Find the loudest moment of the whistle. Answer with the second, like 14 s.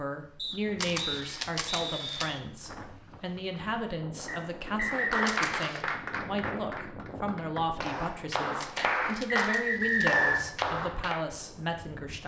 10 s.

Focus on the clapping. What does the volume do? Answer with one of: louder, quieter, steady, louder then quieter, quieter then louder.
quieter then louder.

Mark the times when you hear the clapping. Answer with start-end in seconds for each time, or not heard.
4.8-11.2.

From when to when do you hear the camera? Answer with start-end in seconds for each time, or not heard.
0.8-2.3, 5.2-5.8, 8.6-10.1.